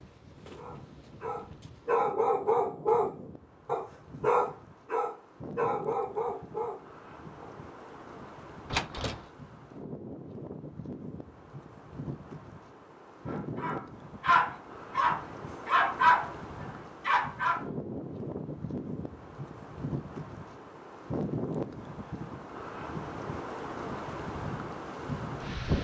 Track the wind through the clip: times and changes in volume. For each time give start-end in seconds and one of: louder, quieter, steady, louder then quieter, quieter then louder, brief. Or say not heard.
0.0-25.7 louder.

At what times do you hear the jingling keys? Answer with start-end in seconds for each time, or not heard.
8.7-9.3.